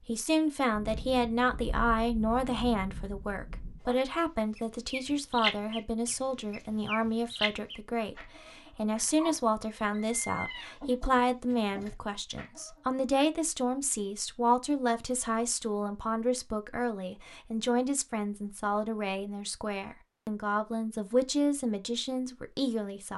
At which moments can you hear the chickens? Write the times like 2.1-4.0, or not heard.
3.8-13.2.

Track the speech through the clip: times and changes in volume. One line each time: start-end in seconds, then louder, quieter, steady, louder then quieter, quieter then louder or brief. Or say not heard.
0.1-23.1 steady.